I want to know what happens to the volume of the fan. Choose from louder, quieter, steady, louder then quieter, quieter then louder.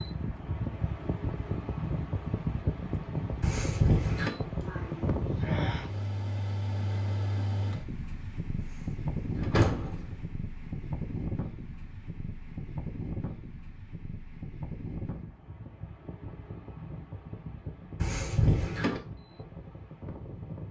quieter.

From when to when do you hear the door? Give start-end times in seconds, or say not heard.
3.4-4.3, 8.6-10.2, 17.9-19.0.